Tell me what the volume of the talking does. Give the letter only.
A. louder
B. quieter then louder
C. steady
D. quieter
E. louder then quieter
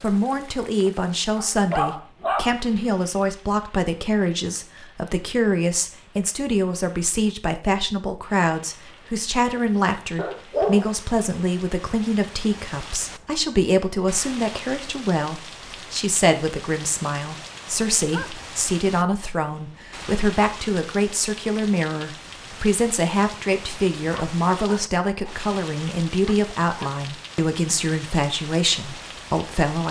C.